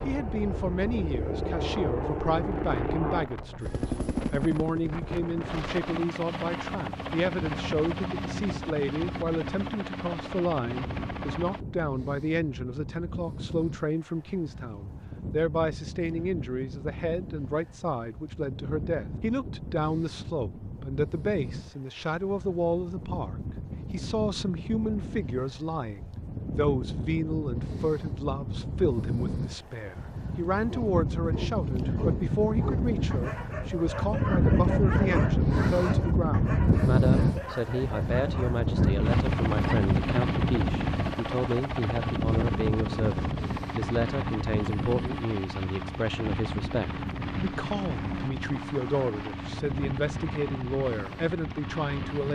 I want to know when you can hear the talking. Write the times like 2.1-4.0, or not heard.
0.1-3.7, 4.3-52.3.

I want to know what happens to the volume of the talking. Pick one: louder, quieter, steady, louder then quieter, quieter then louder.
steady.